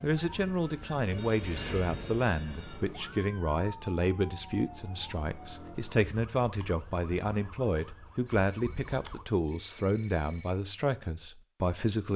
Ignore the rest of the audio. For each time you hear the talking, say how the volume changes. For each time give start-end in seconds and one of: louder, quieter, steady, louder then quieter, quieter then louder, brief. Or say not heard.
0.0-12.1 steady.